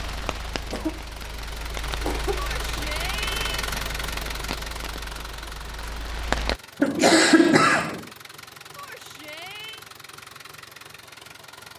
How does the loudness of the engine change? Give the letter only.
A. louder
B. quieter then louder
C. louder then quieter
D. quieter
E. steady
C.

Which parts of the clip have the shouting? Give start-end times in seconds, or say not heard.
2.4-3.6, 8.8-9.8.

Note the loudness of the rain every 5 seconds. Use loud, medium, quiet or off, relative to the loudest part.
medium, loud, off.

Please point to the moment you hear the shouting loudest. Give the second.
3 s.